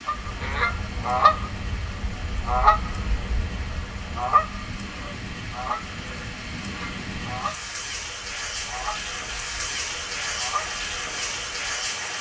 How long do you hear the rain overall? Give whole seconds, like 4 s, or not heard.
12 s.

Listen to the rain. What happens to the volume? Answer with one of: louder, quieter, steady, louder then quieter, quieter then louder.
louder.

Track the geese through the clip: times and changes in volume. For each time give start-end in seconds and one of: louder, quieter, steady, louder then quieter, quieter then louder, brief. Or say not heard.
0.1-11.8 quieter.